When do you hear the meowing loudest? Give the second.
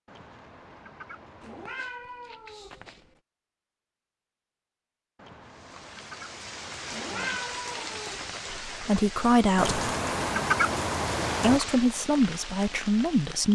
7 s.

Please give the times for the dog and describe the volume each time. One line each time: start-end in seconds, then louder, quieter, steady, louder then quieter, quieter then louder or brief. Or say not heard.
not heard.